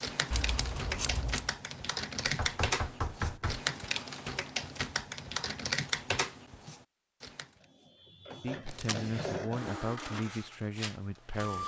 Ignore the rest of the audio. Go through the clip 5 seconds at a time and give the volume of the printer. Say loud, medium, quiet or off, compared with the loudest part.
off, loud, loud.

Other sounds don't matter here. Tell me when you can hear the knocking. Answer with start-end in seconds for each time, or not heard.
2.2-3.6.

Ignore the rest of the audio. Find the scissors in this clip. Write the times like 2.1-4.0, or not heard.
0.3-1.5, 8.7-9.4.